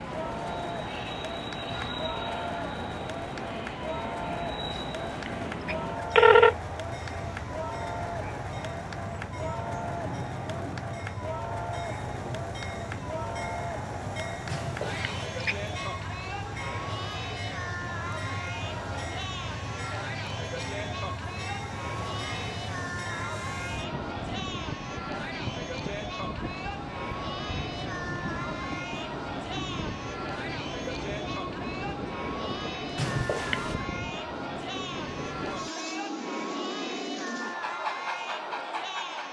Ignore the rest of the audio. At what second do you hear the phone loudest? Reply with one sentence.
The loudest moment of the phone is at 6 seconds.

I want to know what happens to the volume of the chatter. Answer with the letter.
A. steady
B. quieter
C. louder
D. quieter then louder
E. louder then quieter
A.